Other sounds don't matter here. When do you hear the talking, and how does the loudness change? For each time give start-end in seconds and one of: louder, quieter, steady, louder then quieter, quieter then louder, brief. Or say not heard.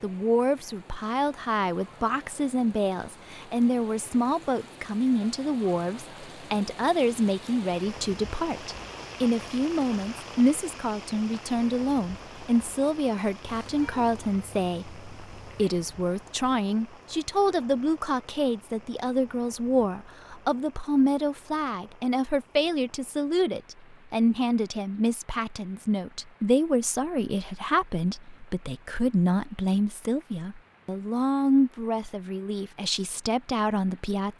0.0-34.3 steady.